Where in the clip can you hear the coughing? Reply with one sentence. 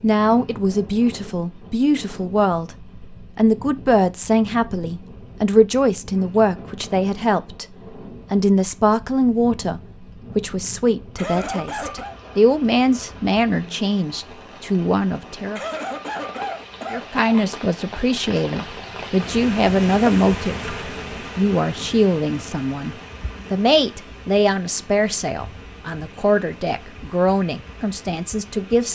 The coughing can be heard from 11.2 to 12.2 s and from 15.6 to 17.6 s.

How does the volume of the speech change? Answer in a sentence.
The volume of the speech stays about the same.